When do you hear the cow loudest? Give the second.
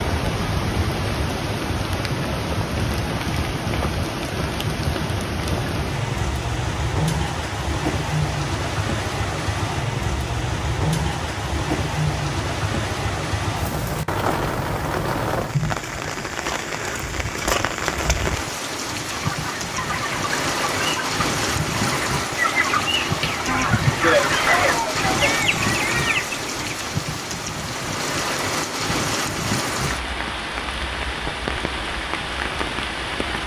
24 s.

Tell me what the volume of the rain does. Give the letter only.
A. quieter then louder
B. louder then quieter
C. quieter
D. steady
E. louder
D.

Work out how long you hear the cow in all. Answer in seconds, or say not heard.
2 s.